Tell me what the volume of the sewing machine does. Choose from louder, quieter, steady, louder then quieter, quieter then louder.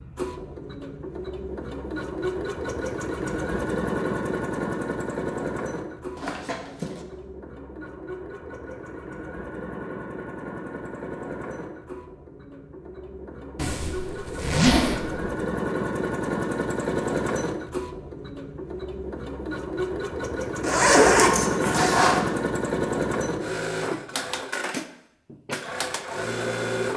quieter then louder.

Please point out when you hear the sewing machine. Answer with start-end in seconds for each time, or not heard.
0.0-26.9.